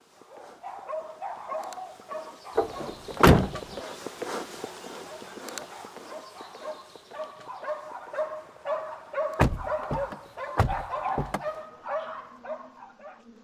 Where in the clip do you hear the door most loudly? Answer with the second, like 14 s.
3 s.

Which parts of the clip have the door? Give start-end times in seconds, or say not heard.
2.5-3.8, 9.3-11.4.